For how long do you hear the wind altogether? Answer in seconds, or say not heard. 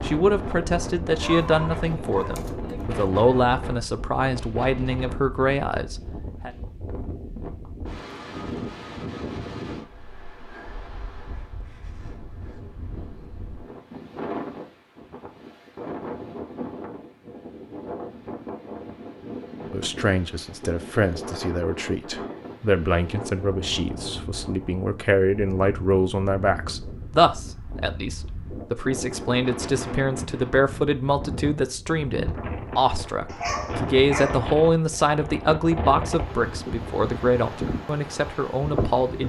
39 s.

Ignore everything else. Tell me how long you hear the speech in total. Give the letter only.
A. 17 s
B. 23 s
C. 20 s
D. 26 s
D.